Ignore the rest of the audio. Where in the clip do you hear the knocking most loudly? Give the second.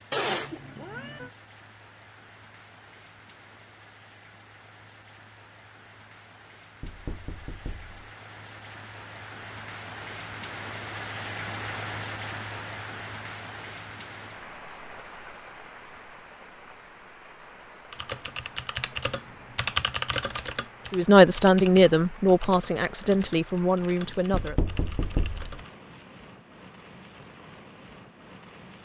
25 s.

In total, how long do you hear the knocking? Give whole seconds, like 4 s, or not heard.
2 s.